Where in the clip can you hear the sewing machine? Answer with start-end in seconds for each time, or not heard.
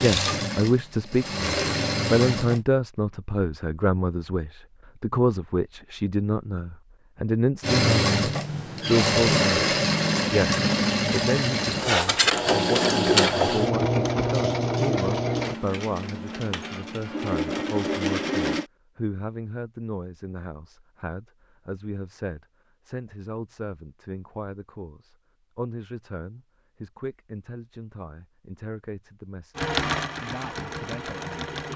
0.0-2.6, 7.6-18.6, 29.6-31.7.